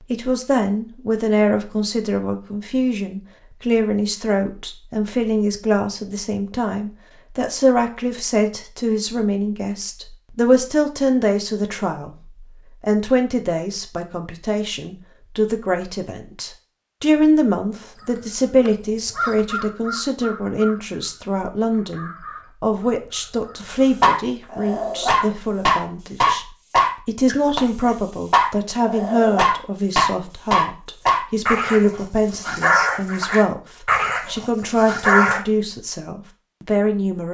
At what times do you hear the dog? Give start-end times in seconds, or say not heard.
24.0-35.4.